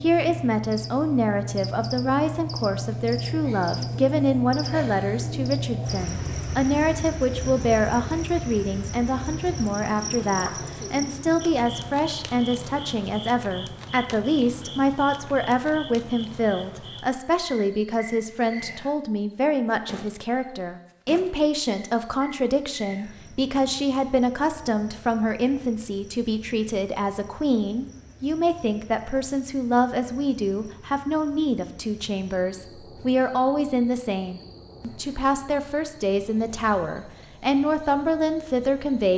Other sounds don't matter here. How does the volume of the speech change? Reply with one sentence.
The loudness of the speech stays about the same.